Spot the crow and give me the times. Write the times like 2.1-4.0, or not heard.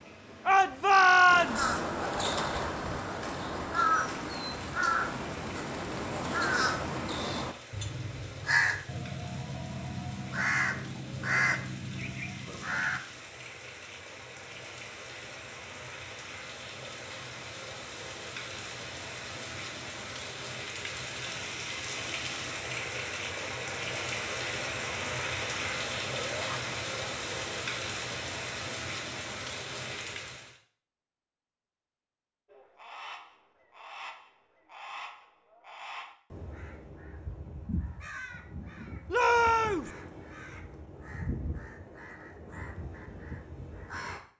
1.2-13.0, 32.5-44.2.